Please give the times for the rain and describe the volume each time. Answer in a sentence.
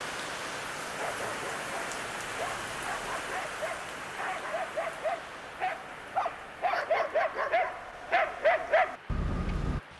The rain can be heard from 0.0 to 9.9 s, getting quieter.